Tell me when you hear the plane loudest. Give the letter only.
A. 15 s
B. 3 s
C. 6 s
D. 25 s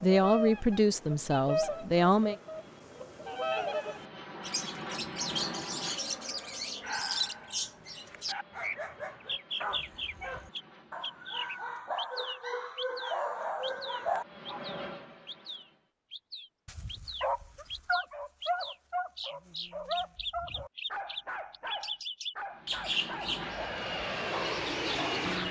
D.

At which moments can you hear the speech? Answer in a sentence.
You can hear the speech from 0.0 to 2.4 s.